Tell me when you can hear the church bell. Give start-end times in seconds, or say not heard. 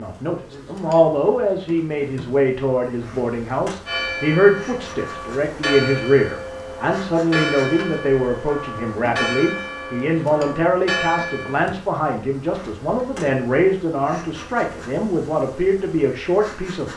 3.9-11.6.